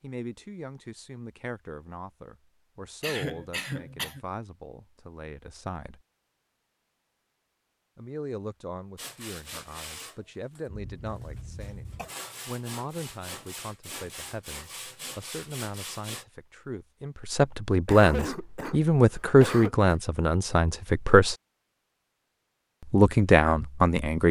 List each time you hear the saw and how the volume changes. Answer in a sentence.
The saw can be heard from 8.9 to 16.2 s, getting quieter then louder.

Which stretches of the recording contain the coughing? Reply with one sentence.
The coughing can be heard from 3.0 to 4.2 s, from 10.7 to 12.1 s and from 17.9 to 20.0 s.